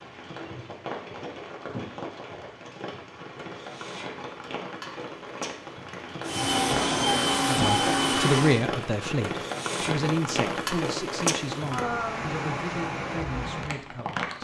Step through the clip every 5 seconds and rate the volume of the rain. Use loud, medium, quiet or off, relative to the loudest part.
medium, loud, loud.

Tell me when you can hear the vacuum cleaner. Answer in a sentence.
You can hear the vacuum cleaner from 6.2 to 8.7 s.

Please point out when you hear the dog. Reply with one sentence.
The dog can't be heard in this clip.